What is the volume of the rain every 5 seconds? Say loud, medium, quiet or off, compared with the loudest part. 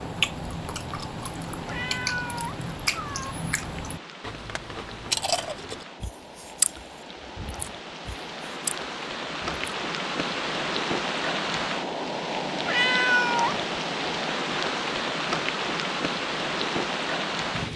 quiet, medium, loud, loud.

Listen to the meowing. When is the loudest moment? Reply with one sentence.
The volume of the meowing peaks at 13 seconds.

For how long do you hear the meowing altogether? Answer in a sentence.
The meowing can be heard for 3 seconds in total.